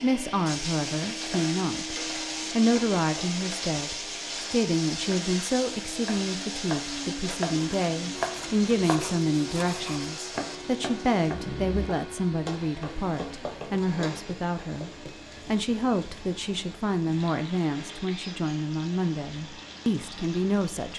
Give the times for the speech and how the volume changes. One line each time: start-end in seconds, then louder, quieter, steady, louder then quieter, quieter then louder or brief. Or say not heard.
0.0-20.9 steady.